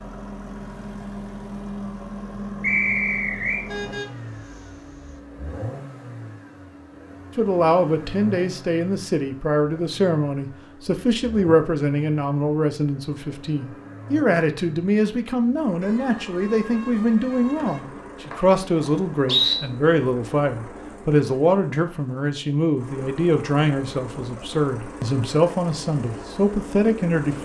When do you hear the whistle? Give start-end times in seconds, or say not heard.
2.6-3.6, 17.6-19.6.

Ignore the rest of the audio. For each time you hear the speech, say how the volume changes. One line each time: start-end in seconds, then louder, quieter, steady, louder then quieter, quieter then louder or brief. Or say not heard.
7.3-27.4 steady.